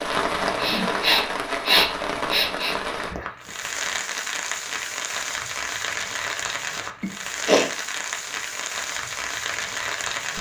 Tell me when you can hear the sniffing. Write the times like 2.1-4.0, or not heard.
0.6-2.8, 7.0-7.7.